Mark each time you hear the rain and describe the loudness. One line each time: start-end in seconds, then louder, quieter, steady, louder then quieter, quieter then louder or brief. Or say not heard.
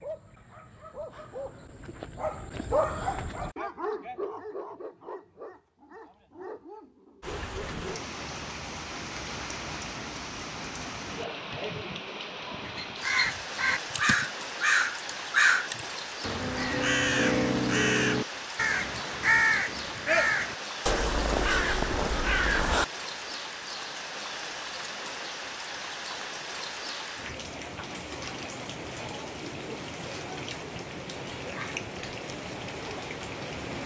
7.2-33.8 steady.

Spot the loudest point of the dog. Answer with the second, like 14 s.
3 s.